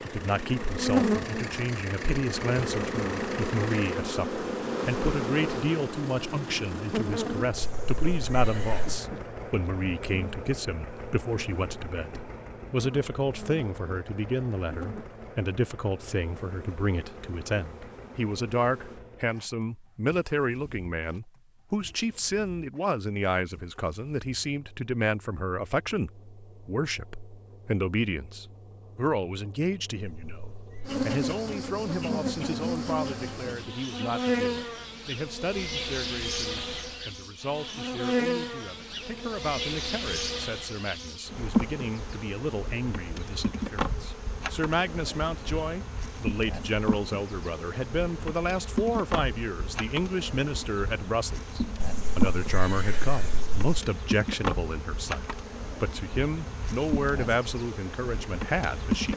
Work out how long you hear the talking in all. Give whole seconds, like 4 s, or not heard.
59 s.